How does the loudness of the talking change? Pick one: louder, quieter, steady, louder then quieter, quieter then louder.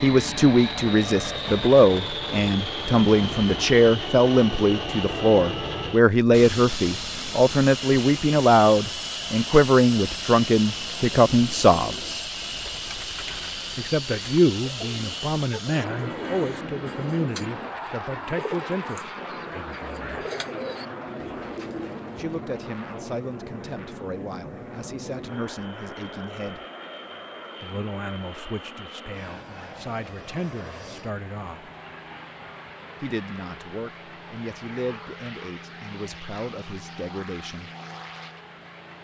quieter.